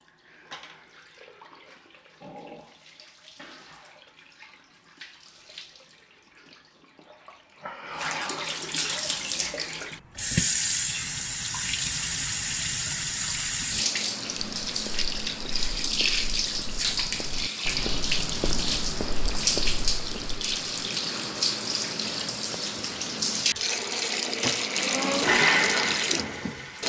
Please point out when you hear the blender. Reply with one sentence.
The blender can be heard from 23.8 to 26.8 s.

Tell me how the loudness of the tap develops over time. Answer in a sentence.
The loudness of the tap goes up.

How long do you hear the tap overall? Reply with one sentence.
The tap can be heard for 27 seconds in total.